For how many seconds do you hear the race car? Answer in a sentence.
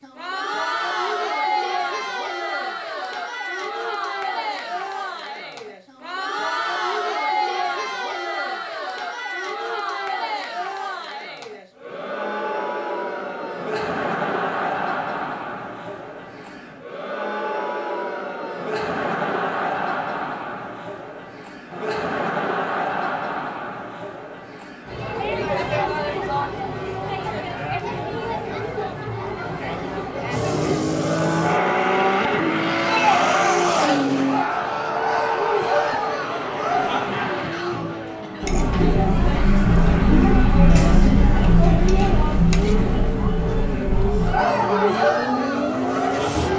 The race car can be heard for 16 seconds in total.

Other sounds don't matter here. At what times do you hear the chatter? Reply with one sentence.
You can hear the chatter from 0.0 to 46.5 s.